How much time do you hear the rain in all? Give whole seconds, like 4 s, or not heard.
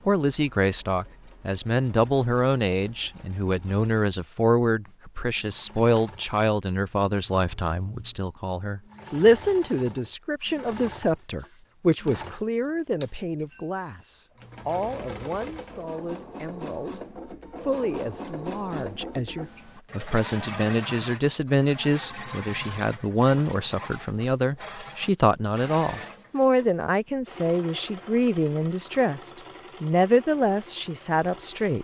not heard.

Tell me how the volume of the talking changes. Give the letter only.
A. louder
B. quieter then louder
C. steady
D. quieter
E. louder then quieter
B.